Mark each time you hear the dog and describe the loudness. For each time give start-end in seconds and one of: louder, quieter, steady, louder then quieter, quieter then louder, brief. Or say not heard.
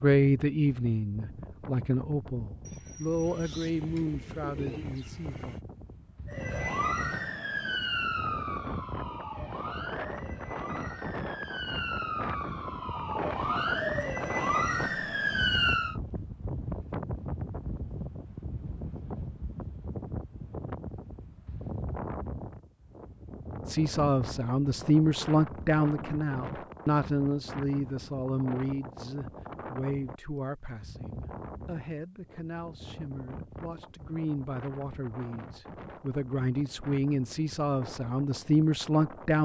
not heard.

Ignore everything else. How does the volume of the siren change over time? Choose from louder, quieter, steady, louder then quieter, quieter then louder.
quieter then louder.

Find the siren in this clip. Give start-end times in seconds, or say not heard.
6.2-15.9.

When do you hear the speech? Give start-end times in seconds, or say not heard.
0.0-5.6, 23.6-39.4.